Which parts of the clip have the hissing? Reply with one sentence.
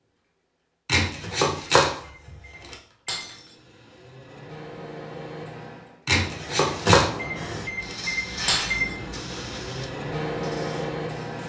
The hissing can be heard from 6.1 to 11.4 s.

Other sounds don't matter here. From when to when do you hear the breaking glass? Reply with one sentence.
You can hear the breaking glass from 3.0 to 3.5 s and from 8.4 to 8.9 s.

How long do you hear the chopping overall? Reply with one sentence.
You can hear the chopping for 4 seconds altogether.